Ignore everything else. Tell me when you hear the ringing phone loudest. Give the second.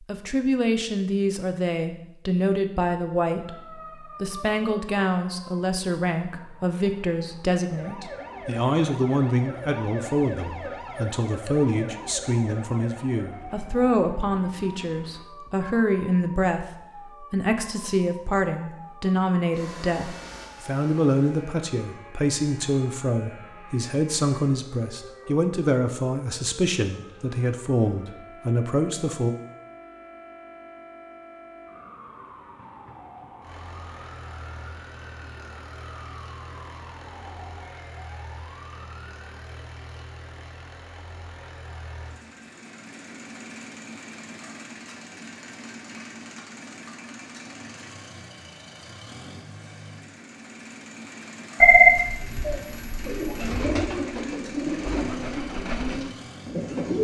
52 s.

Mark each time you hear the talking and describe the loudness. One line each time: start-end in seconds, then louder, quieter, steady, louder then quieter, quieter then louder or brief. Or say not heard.
0.0-29.4 steady.